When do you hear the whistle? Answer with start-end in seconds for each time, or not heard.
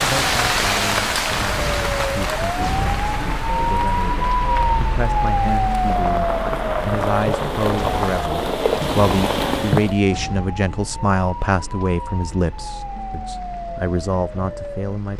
not heard.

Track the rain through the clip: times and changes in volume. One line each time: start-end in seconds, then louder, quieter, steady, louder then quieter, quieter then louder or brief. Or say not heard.
0.0-9.9 quieter then louder.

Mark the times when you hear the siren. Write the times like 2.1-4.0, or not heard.
0.0-15.1.